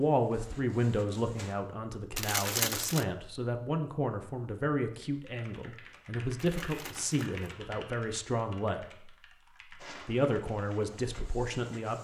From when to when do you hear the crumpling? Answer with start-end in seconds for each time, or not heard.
2.1-3.0, 6.3-7.5.